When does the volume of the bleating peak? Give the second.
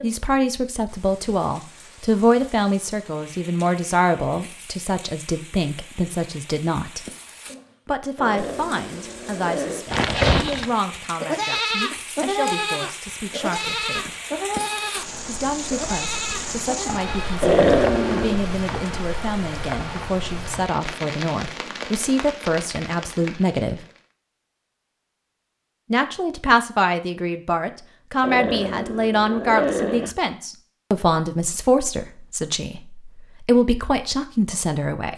10 s.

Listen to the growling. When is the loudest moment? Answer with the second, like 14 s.
18 s.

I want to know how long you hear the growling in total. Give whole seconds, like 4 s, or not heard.
5 s.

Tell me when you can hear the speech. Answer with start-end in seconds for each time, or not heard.
0.0-7.0, 7.8-14.2, 15.2-23.8, 25.9-35.1.